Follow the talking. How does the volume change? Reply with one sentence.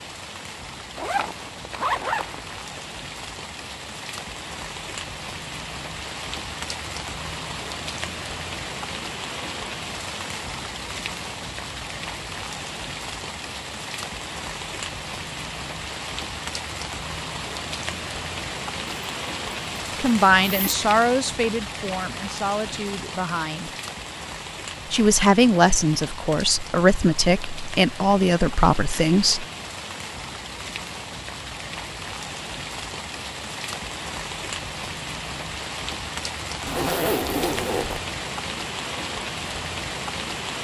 The loudness of the talking goes down, then up.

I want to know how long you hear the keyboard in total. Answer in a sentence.
The keyboard can't be heard in this clip.